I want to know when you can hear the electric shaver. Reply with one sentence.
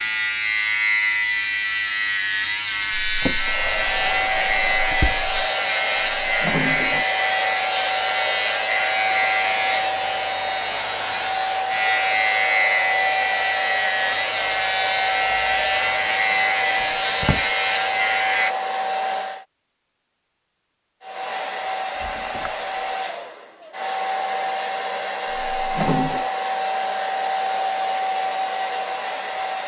You can hear the electric shaver from 0.0 to 18.6 s.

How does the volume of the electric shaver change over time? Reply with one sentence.
The volume of the electric shaver stays about the same.